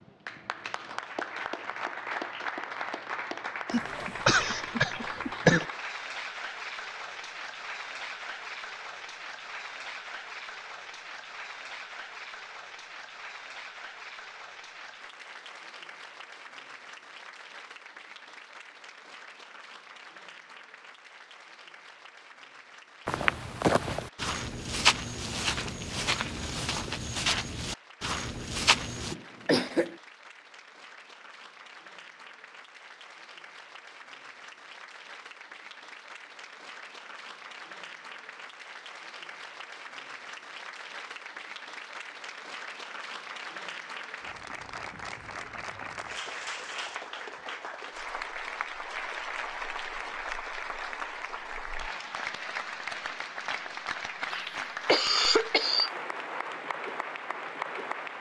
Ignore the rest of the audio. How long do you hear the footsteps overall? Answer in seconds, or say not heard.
6 s.